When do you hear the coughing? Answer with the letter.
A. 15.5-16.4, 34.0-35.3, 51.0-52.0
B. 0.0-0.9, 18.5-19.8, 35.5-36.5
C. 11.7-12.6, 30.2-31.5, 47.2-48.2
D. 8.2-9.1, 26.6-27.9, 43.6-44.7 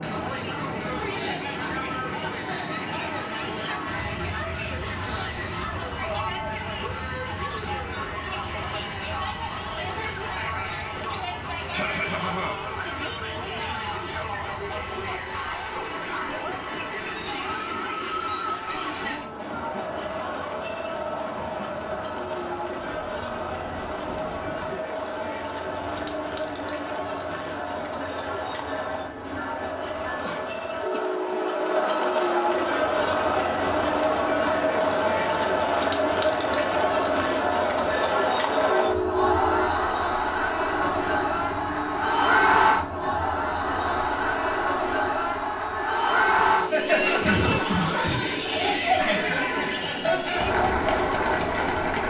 C.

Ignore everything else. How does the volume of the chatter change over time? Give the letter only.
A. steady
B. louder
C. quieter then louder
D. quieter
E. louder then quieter
B.